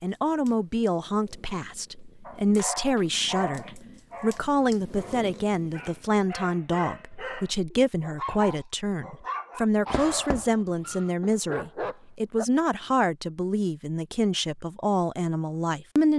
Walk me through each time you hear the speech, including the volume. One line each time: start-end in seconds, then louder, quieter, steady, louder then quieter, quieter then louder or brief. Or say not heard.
0.0-16.1 steady.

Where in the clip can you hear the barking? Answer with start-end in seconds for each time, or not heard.
2.2-12.4.